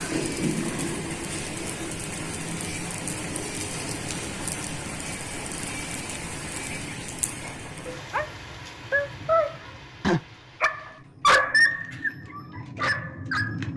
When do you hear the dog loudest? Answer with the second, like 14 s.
11 s.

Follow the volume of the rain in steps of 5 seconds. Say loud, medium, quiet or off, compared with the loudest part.
loud, medium, medium.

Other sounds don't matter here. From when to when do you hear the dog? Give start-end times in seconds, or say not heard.
8.1-13.7.